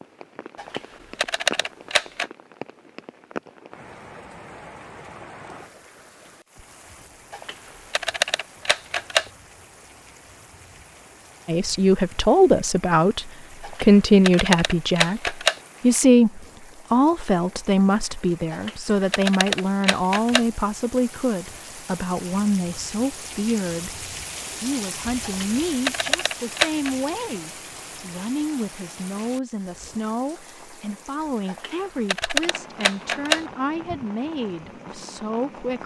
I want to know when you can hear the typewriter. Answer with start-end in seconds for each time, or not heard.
0.6-2.2, 7.3-9.3, 13.6-15.6, 18.5-20.4, 25.2-26.9, 31.4-33.5.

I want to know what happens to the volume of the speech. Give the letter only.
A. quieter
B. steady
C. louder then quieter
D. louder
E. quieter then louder
A.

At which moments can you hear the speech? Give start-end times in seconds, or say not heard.
11.4-35.8.